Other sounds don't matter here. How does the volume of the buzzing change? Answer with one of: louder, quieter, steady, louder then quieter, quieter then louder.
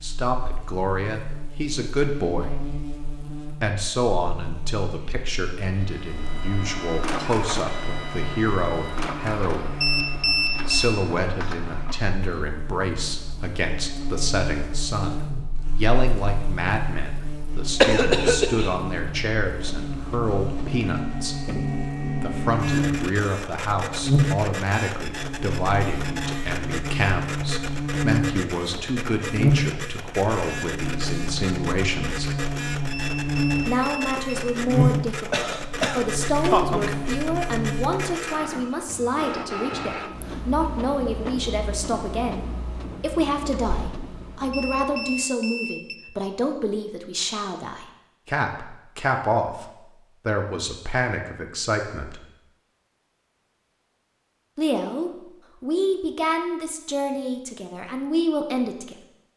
louder.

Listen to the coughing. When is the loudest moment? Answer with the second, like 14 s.
18 s.